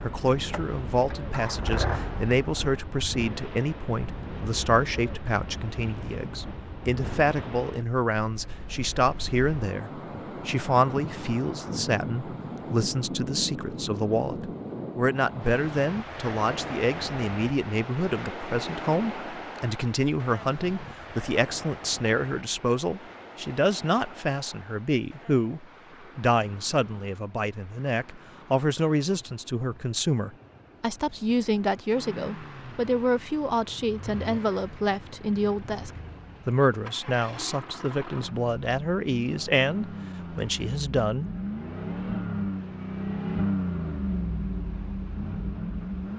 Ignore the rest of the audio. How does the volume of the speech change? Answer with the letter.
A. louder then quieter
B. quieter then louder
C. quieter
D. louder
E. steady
E.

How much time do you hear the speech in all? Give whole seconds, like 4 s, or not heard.
41 s.